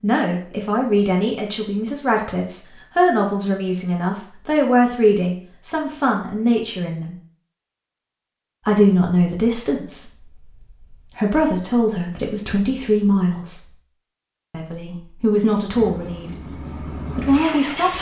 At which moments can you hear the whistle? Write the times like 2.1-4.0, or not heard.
not heard.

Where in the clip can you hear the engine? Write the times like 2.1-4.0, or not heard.
15.8-17.9.